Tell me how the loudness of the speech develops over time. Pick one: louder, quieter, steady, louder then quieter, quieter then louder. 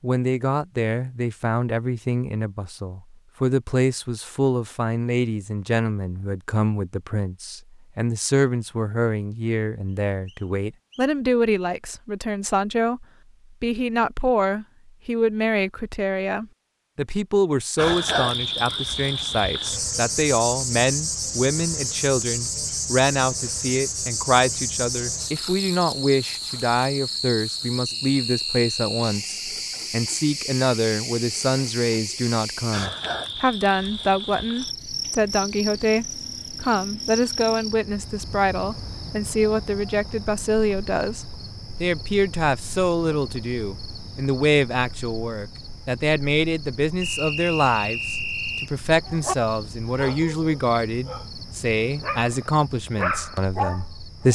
steady.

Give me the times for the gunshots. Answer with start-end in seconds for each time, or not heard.
not heard.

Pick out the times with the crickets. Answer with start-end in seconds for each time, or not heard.
17.8-54.2.